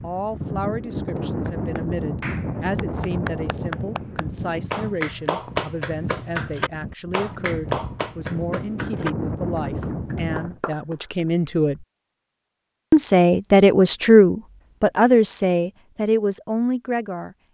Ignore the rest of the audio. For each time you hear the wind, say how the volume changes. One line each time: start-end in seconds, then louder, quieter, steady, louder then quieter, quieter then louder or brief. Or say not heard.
0.0-10.6 quieter then louder.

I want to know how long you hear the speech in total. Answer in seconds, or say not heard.
16 s.